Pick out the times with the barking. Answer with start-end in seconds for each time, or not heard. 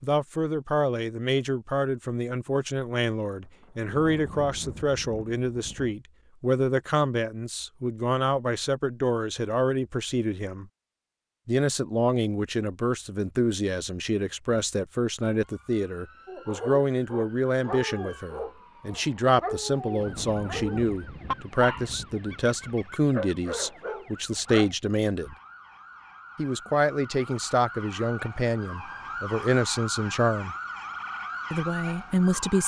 16.2-24.7.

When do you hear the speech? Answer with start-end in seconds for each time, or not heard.
0.0-10.7, 11.4-25.4, 26.4-30.6, 31.5-32.6.